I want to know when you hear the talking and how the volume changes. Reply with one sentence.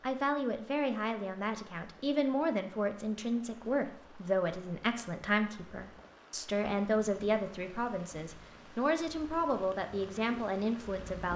You can hear the talking from 0.0 to 11.3 s, at a steady volume.